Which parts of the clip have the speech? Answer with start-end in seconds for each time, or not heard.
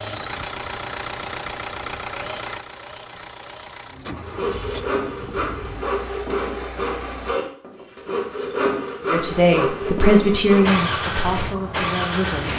9.1-12.5.